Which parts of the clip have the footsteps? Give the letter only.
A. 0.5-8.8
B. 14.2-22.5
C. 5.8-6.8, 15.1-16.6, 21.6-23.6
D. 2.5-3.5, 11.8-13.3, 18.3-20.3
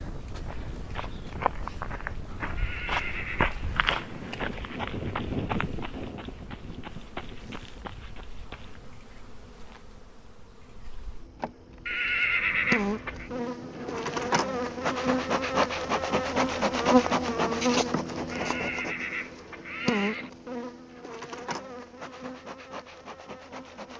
A.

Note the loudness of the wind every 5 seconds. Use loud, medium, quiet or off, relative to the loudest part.
loud, loud, medium, off, off.